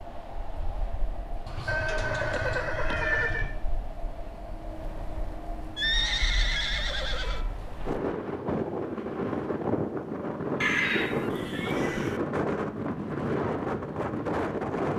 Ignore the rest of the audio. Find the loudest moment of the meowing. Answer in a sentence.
The volume of the meowing peaks at 3 seconds.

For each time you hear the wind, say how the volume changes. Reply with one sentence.
You can hear the wind from 0.0 to 14.9 s, getting louder.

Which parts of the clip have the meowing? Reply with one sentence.
You can hear the meowing from 1.4 to 3.5 s, from 5.8 to 7.4 s and from 11.3 to 11.9 s.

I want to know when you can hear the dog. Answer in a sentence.
The dog can't be heard in this clip.